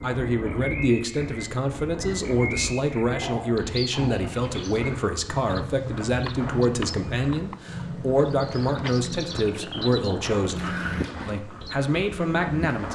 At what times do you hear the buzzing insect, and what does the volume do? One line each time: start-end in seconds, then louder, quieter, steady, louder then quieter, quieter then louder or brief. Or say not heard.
not heard.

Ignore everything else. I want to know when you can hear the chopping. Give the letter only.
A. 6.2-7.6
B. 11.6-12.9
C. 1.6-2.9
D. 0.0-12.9
A.